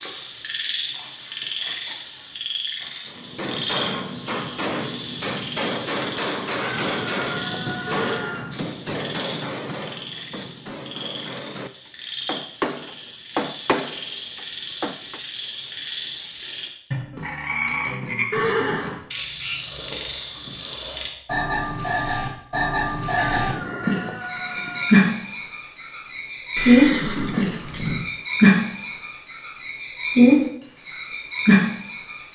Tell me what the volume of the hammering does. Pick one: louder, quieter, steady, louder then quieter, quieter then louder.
quieter then louder.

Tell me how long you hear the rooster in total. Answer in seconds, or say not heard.
4 s.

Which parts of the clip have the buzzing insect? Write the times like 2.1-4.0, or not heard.
not heard.